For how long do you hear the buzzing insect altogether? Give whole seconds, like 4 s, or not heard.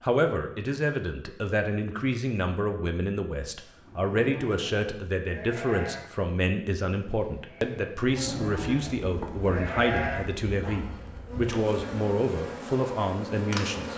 6 s.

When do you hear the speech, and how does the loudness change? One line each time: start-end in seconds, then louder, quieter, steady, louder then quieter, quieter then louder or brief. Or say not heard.
0.0-13.9 steady.